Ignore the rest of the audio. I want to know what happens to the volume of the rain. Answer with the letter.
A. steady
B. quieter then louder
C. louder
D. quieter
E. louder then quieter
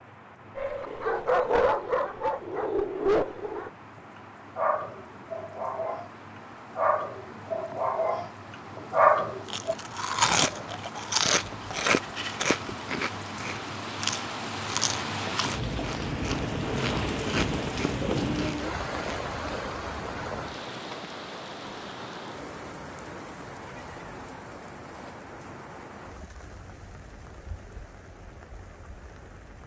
E.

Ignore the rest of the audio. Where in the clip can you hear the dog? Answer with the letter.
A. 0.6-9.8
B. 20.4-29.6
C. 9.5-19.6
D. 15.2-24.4
A.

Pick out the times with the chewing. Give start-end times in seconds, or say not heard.
9.5-19.6.